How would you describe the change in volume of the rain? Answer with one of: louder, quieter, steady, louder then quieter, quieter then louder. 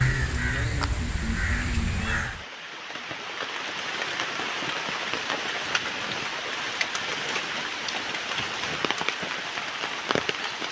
louder.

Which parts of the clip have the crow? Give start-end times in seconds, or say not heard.
0.0-2.5.